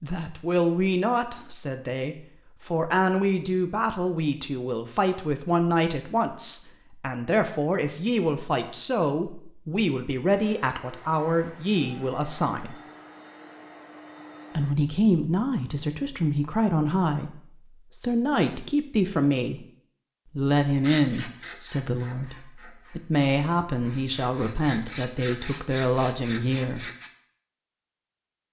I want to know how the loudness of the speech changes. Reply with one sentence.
The volume of the speech stays about the same.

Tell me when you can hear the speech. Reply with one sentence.
You can hear the speech from 0.0 to 12.8 s, from 14.6 to 19.6 s and from 20.4 to 26.9 s.